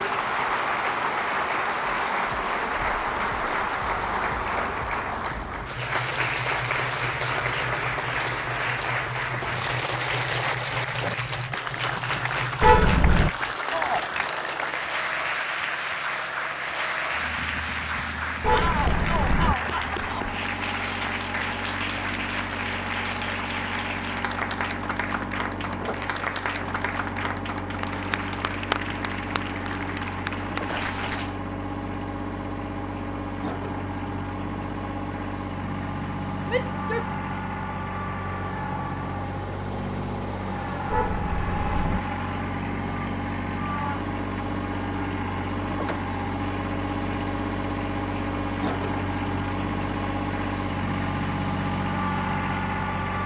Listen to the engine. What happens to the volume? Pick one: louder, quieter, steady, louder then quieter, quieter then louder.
louder.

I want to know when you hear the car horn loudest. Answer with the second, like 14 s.
13 s.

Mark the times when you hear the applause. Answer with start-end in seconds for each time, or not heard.
0.0-31.4.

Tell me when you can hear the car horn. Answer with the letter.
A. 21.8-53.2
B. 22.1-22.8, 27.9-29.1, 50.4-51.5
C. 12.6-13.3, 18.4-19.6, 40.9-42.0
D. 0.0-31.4
C.